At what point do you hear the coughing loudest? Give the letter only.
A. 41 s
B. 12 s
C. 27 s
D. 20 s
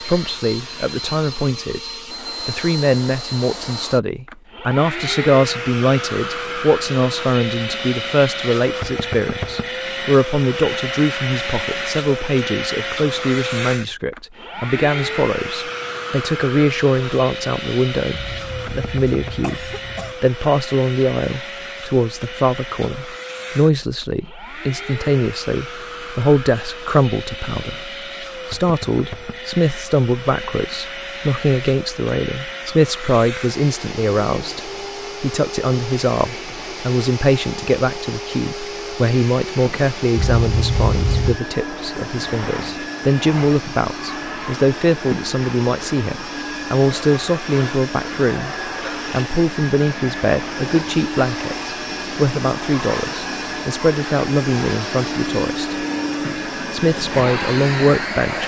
A.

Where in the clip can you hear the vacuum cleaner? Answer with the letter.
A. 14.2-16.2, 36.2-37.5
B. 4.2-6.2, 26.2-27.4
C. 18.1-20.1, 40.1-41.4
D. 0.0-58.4
D.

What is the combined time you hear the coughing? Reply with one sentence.
You can hear the coughing for 3 seconds altogether.